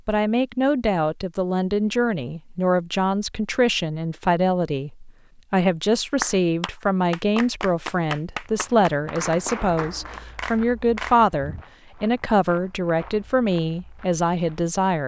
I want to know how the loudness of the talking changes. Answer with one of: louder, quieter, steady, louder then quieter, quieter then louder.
steady.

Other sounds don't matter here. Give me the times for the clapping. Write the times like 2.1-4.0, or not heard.
6.2-11.2.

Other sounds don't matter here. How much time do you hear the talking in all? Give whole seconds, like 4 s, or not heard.
15 s.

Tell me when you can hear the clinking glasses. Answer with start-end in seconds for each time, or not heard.
not heard.